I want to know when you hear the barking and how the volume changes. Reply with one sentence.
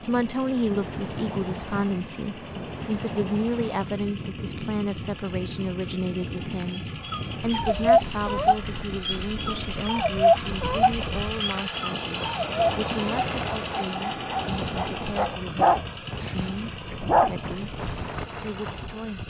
You can hear the barking from 6.7 to 17.6 s, getting quieter then louder.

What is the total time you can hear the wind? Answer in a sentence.
The wind can be heard for 19 seconds in total.